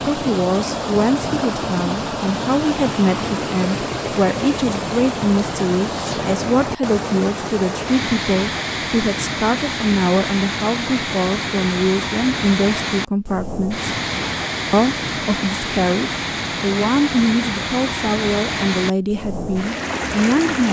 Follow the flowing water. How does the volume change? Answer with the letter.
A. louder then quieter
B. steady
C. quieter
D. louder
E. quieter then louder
B.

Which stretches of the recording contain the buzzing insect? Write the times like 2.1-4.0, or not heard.
not heard.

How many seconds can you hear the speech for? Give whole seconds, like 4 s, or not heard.
20 s.